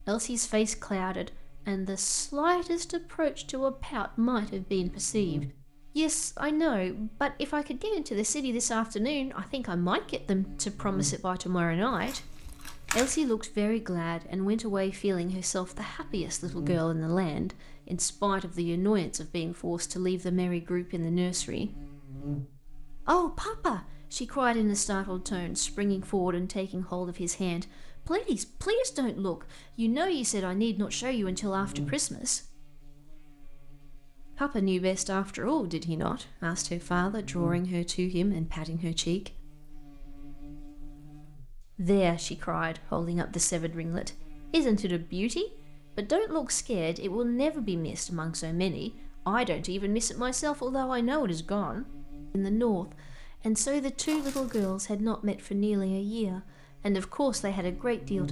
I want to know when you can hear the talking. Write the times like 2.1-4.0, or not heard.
0.0-12.2, 12.9-21.9, 23.1-32.4, 34.4-39.4, 41.8-58.2.